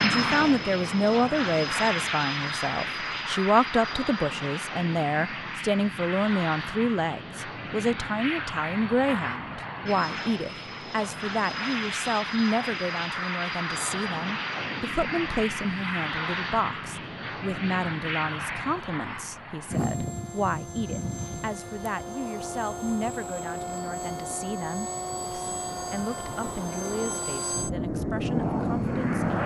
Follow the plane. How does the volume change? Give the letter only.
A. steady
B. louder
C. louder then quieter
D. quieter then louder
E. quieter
A.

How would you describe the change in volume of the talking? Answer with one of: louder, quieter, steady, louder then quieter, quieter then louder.
quieter.